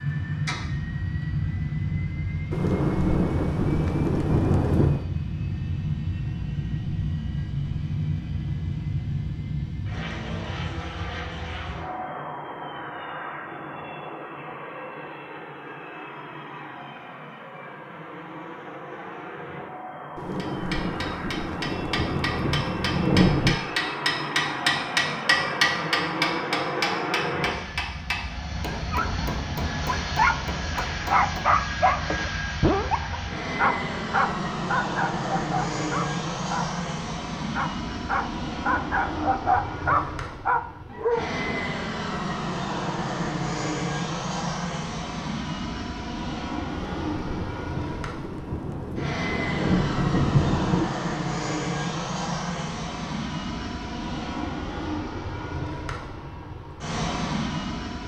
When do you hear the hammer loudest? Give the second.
25 s.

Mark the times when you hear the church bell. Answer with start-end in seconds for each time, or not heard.
not heard.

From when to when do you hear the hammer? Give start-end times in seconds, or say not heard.
20.4-31.4.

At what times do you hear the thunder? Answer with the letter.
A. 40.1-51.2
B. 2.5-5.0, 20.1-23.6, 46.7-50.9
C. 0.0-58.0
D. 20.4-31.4
B.